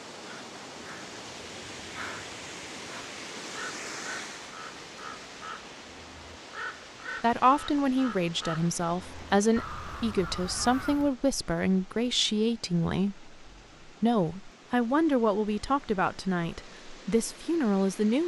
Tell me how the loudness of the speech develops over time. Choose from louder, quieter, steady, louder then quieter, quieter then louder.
steady.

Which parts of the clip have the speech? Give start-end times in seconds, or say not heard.
7.2-18.2.